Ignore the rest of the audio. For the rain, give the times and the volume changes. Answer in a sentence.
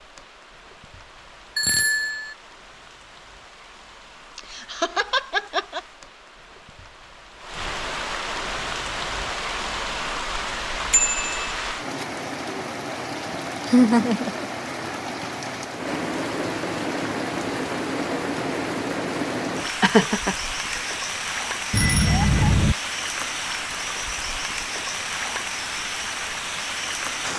The rain can be heard from 0.0 to 27.3 s, getting louder.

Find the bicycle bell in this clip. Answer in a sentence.
The bicycle bell can be heard from 1.6 to 2.4 s, from 10.9 to 11.4 s and from 21.7 to 22.8 s.